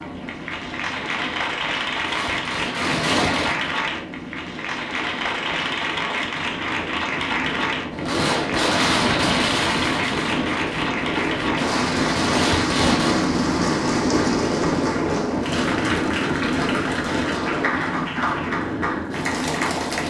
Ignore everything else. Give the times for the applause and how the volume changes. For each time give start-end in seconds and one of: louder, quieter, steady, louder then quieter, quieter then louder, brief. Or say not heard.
0.0-20.0 steady.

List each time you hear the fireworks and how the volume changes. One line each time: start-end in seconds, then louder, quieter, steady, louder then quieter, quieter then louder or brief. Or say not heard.
1.9-3.8 brief
7.9-13.2 quieter then louder.